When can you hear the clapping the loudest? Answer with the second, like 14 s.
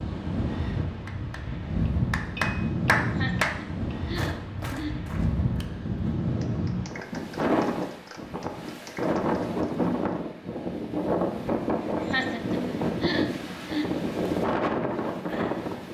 3 s.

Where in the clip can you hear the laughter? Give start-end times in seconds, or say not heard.
3.0-5.0, 12.0-13.8.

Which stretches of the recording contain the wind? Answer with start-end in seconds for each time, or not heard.
0.0-15.8.